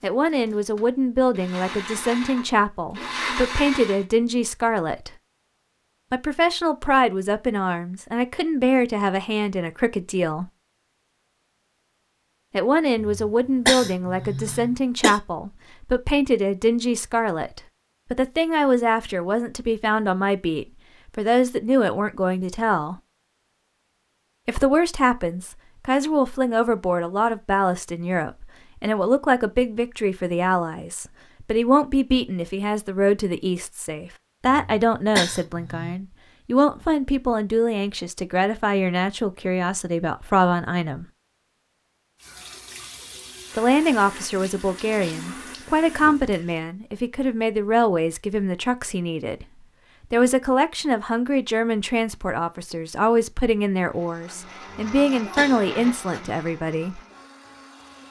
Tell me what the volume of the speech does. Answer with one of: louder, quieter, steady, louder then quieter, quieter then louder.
steady.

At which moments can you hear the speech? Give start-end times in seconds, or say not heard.
0.0-5.1, 6.1-10.5, 12.5-23.0, 24.4-41.0, 43.5-49.5, 50.1-57.0.